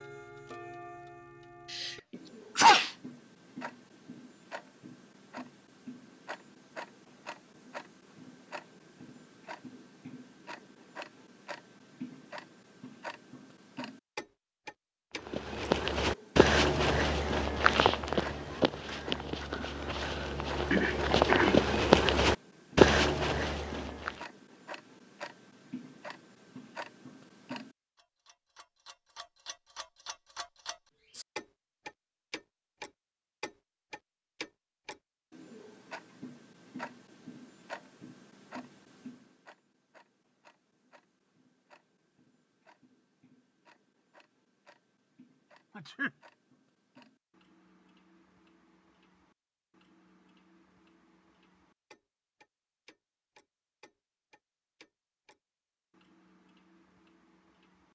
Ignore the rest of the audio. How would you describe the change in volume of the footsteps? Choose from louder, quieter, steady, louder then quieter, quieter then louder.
quieter then louder.